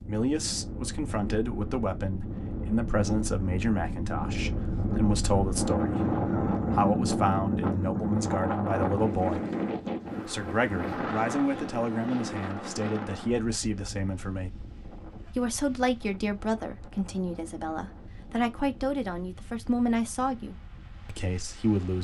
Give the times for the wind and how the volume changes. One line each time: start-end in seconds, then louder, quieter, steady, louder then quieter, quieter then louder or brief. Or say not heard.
0.0-21.9 louder then quieter.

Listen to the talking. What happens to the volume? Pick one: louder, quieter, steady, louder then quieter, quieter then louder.
steady.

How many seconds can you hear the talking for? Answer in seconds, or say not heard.
20 s.